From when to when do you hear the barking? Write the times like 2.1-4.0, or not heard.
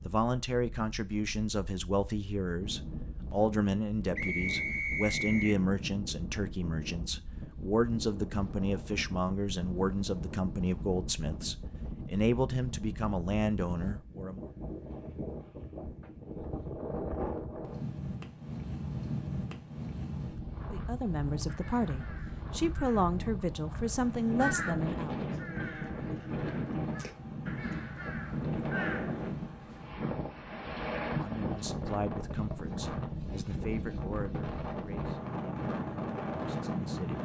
not heard.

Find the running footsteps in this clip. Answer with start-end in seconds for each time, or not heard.
not heard.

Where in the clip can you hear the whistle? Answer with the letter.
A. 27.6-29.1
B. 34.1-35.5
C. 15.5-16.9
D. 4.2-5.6
D.